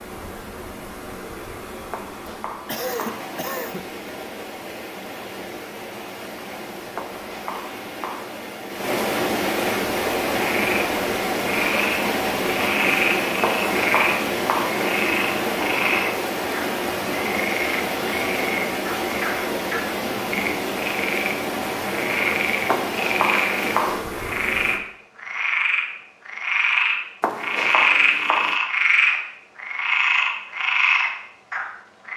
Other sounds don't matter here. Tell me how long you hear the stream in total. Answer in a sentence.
The stream can be heard for 25 seconds in total.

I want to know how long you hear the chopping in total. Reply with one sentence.
You can hear the chopping for 7 seconds altogether.